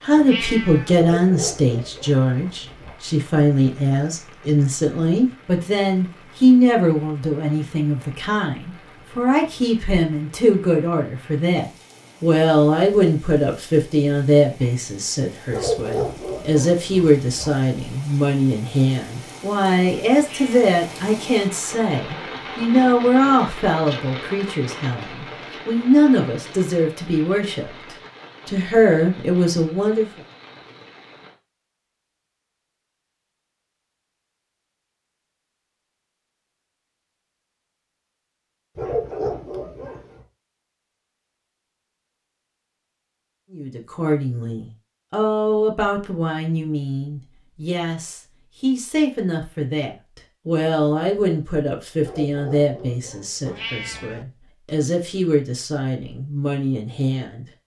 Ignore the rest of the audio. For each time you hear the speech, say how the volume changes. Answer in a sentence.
The speech can be heard from 0.0 to 27.7 s, at a steady volume; briefly from 28.4 to 30.1 s; and from 43.5 to 57.5 s, at a steady volume.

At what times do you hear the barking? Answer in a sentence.
You can hear the barking from 0.9 to 3.0 s, from 15.5 to 17.5 s, from 38.8 to 40.2 s and from 52.0 to 54.0 s.